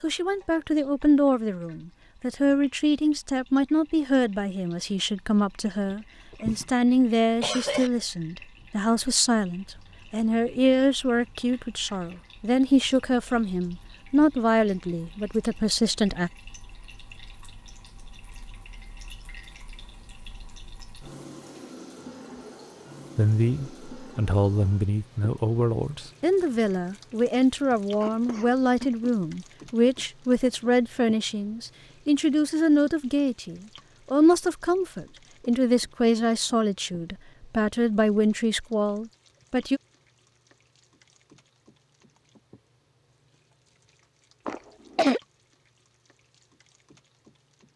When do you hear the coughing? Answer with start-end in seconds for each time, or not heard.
5.9-7.9, 28.0-29.1, 44.5-45.2.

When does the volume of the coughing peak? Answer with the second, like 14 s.
45 s.